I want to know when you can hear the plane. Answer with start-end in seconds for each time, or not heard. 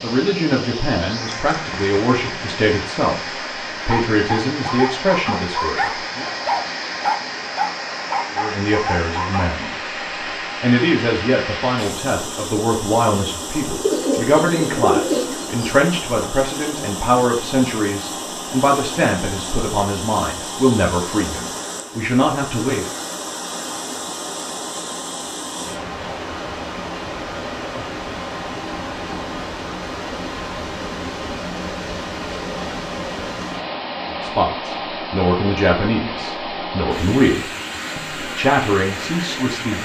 not heard.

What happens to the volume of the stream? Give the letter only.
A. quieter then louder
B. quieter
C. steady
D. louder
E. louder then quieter
C.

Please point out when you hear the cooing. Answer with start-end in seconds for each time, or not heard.
13.8-15.6.